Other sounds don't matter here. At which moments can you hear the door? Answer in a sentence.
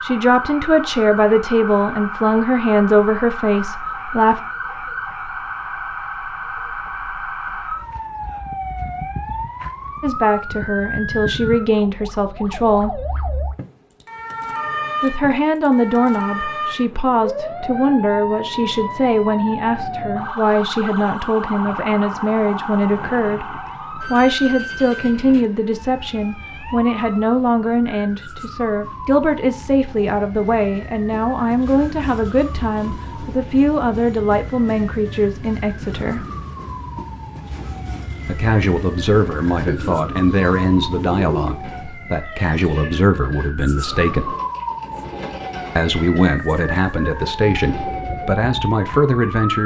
You can't hear the door here.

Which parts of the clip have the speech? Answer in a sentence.
You can hear the speech from 0.0 to 4.4 s, from 10.0 to 13.0 s, from 15.0 to 36.2 s, from 38.2 to 44.4 s and from 45.8 to 49.6 s.